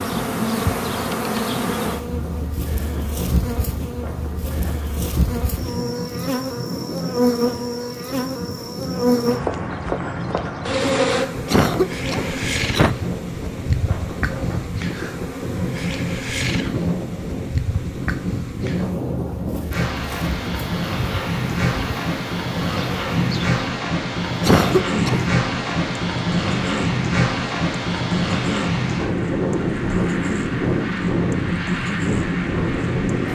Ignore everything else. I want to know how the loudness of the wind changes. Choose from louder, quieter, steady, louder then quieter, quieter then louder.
louder.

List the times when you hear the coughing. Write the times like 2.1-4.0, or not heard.
11.4-12.9, 24.4-25.3.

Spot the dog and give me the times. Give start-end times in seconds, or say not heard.
not heard.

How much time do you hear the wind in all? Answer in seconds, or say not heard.
33 s.